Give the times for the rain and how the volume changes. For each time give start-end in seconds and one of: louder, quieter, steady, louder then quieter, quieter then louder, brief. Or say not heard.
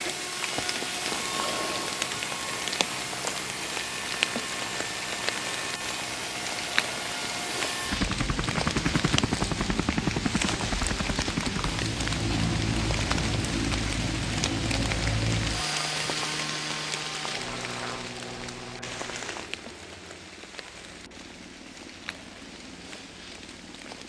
0.0-24.0 quieter.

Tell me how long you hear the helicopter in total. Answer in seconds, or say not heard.
24 s.